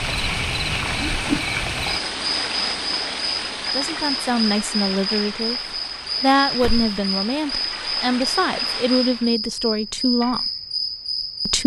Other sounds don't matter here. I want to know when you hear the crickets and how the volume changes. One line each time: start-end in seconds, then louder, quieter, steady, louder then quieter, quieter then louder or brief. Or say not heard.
0.0-11.6 steady.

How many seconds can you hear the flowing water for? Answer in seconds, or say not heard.
9 s.